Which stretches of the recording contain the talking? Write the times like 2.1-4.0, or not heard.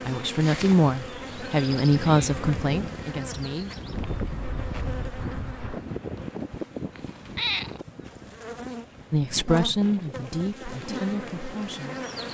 0.1-3.7, 9.1-12.0.